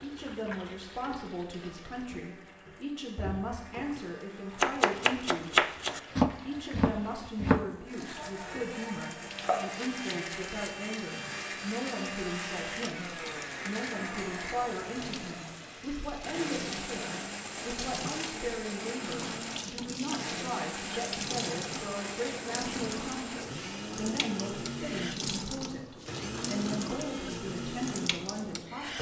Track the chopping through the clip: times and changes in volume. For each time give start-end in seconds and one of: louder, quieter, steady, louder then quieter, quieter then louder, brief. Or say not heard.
4.5-9.9 quieter then louder.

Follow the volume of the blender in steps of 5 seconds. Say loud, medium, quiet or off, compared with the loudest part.
quiet, medium, loud, loud, loud, loud.